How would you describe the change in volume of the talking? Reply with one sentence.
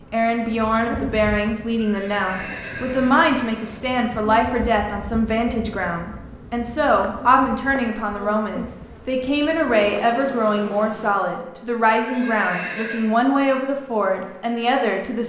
The volume of the talking stays about the same.